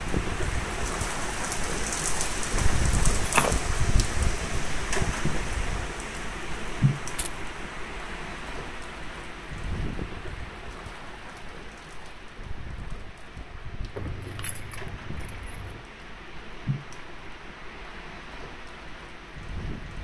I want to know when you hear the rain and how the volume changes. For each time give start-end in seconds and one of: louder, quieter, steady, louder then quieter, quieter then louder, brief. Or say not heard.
0.0-20.0 quieter.